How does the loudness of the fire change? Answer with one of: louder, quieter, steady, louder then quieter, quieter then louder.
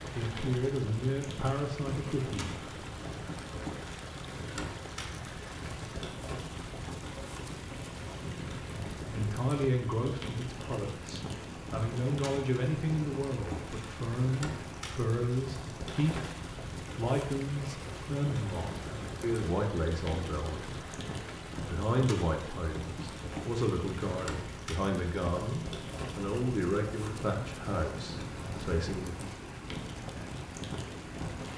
steady.